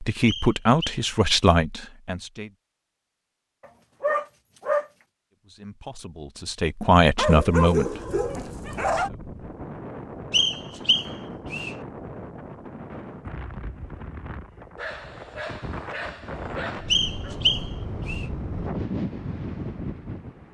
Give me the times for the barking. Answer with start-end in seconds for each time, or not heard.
3.6-4.8, 7.2-9.1, 14.8-17.4.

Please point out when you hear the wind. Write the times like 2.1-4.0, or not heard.
7.8-20.4.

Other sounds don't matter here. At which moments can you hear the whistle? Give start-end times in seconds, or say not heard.
0.2-1.1, 10.3-11.8, 16.9-18.2.